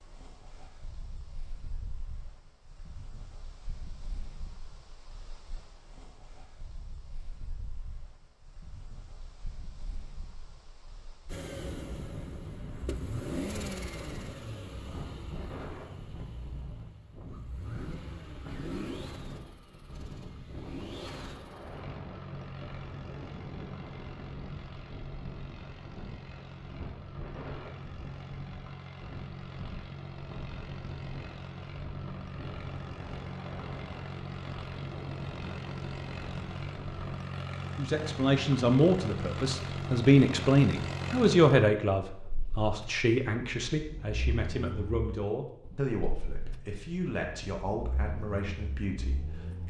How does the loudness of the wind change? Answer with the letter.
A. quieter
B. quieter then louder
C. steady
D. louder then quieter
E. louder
E.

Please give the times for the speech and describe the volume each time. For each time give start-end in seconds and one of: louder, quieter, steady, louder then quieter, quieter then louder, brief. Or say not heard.
37.8-49.6 quieter.